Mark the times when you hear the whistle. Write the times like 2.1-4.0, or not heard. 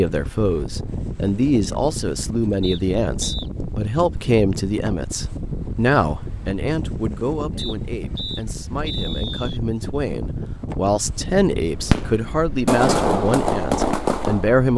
2.6-3.5, 7.5-9.6.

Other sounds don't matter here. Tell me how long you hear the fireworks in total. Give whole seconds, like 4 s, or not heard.
3 s.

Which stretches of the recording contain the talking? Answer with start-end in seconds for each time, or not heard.
0.0-14.7.